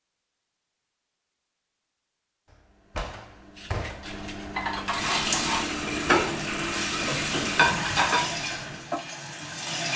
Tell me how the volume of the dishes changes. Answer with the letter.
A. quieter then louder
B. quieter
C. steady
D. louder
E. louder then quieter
D.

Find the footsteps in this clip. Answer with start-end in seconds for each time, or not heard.
not heard.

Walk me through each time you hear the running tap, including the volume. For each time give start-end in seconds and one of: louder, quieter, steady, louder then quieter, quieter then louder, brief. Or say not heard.
4.8-9.9 quieter.